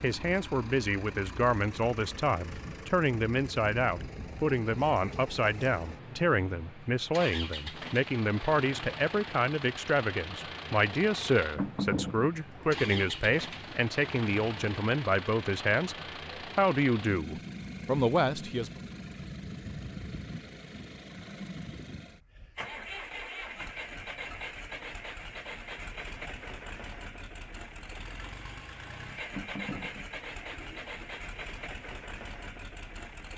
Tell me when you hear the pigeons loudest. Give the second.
12 s.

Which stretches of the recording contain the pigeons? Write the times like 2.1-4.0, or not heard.
11.6-13.8, 29.3-31.2.